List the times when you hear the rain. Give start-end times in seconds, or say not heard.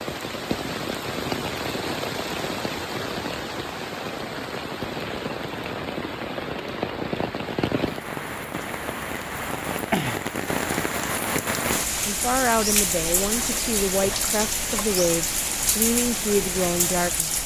0.0-17.4.